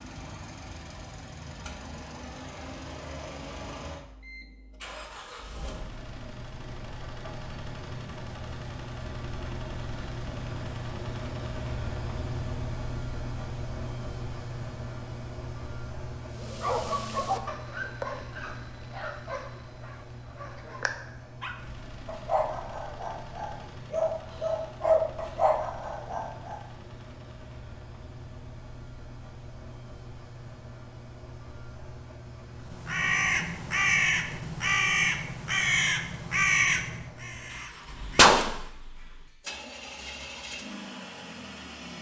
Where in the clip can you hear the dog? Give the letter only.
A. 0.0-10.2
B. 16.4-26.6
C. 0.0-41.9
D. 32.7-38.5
B.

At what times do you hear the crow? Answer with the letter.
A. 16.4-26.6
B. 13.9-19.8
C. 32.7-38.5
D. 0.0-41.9
C.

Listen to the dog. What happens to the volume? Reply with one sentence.
The volume of the dog goes down, then up.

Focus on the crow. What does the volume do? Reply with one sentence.
The loudness of the crow goes down.